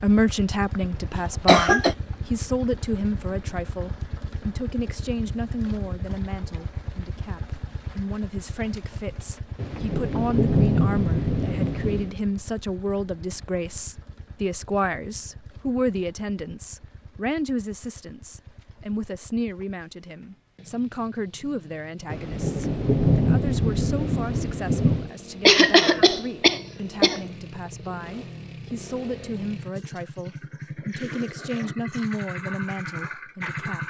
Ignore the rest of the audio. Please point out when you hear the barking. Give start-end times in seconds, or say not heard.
not heard.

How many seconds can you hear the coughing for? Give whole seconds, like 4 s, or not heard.
3 s.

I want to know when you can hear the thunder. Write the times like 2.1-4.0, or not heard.
9.6-12.2, 22.1-25.1.